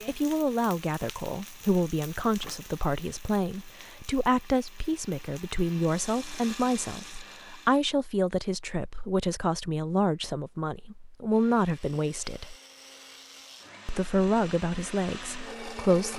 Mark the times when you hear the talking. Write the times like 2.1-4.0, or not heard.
0.1-12.6, 13.8-16.1.